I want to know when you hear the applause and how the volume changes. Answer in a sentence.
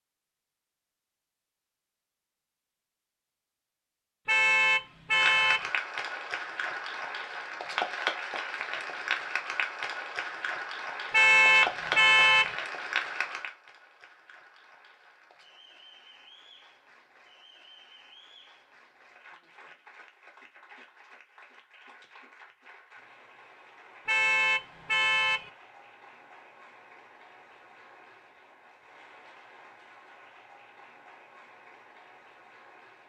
The applause can be heard from 5.2 to 33.0 s, getting quieter.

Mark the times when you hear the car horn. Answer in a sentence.
The car horn can be heard from 4.2 to 5.7 s, from 11.1 to 12.6 s and from 24.1 to 25.5 s.